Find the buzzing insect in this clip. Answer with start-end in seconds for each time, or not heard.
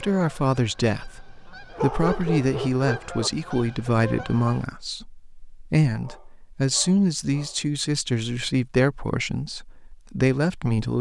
not heard.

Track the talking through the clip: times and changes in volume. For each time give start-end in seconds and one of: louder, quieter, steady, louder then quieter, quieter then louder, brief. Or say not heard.
0.0-10.9 steady.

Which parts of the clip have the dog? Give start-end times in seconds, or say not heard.
1.8-3.3, 6.0-7.7.